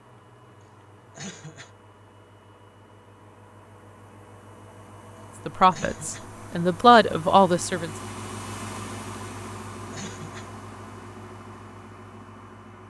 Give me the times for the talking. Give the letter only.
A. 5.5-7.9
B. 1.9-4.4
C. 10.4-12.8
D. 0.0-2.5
A.